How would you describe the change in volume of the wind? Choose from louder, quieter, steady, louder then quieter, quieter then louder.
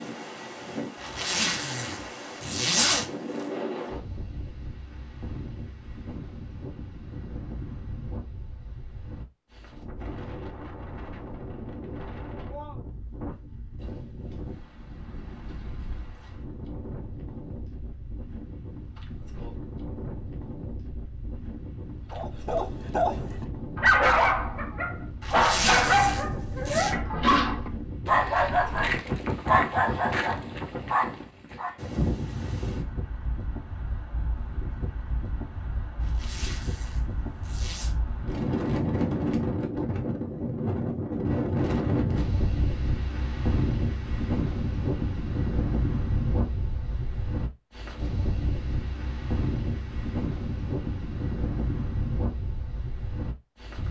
louder.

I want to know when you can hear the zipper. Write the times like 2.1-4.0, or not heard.
1.0-3.0, 25.2-26.9, 36.0-38.0.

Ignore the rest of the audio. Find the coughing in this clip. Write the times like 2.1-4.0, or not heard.
not heard.